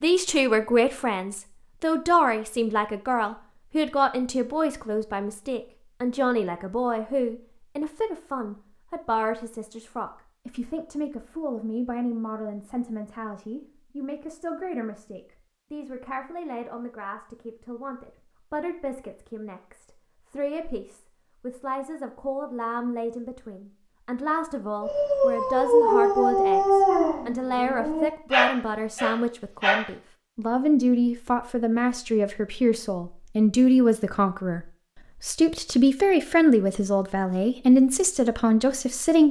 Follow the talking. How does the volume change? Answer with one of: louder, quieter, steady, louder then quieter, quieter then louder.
quieter then louder.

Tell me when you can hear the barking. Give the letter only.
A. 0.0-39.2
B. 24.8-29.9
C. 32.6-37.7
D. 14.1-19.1
B.